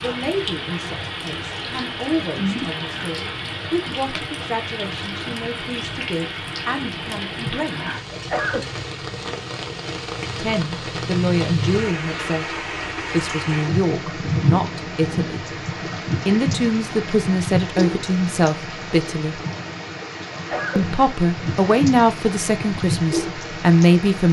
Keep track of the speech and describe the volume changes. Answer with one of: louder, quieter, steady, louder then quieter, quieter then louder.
louder.